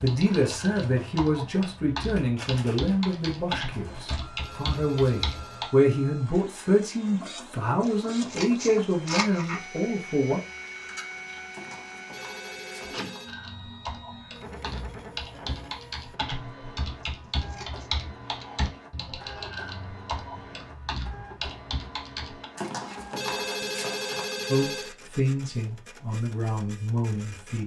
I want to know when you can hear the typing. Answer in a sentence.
The typing can be heard from 0.0 to 5.7 s and from 13.2 to 22.4 s.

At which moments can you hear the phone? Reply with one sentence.
You can hear the phone from 3.8 to 5.6 s, from 11.5 to 13.3 s and from 22.6 to 24.9 s.